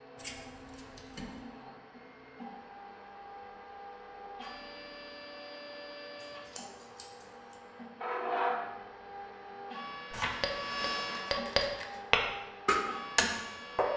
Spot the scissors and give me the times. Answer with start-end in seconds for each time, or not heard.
0.1-1.4, 6.2-7.5, 10.1-12.0.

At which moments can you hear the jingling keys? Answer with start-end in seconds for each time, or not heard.
not heard.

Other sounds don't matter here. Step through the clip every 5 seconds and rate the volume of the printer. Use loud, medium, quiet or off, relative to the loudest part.
medium, loud, loud.